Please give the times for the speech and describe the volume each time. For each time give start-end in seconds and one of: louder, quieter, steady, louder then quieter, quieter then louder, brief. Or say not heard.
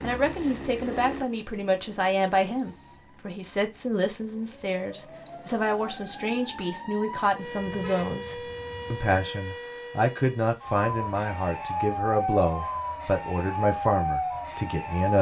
0.0-15.1 steady.